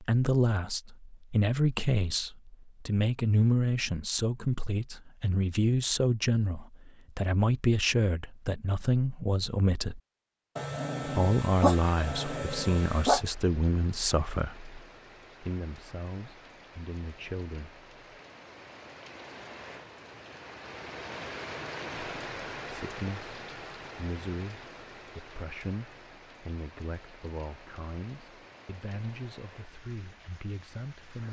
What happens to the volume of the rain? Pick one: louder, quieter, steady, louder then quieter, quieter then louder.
louder then quieter.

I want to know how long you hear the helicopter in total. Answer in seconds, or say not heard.
not heard.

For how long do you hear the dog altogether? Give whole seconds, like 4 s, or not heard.
3 s.